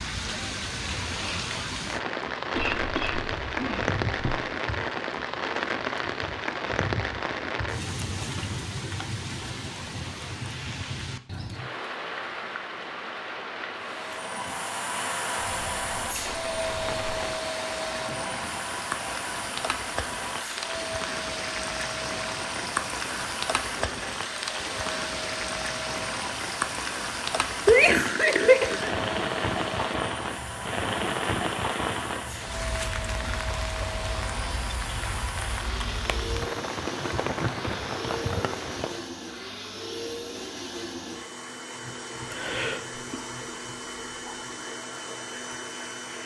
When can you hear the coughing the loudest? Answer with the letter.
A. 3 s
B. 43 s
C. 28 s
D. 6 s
C.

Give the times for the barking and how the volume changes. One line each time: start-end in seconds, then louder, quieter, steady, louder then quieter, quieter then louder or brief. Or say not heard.
not heard.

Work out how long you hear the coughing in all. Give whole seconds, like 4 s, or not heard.
4 s.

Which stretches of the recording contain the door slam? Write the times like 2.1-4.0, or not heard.
not heard.